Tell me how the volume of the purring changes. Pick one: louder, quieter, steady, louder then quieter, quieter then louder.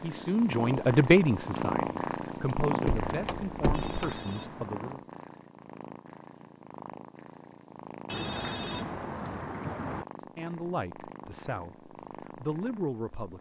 quieter.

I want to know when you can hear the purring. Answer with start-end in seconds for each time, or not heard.
0.0-13.3.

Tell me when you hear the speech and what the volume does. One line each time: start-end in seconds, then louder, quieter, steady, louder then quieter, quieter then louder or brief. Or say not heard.
0.0-5.0 quieter
10.3-13.3 brief.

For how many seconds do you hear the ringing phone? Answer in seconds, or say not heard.
3 s.